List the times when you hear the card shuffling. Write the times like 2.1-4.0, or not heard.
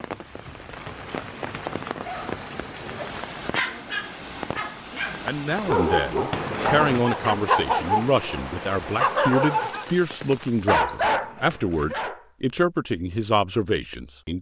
0.8-3.2, 6.3-7.0, 10.8-12.0.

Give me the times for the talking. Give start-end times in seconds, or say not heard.
5.2-14.3.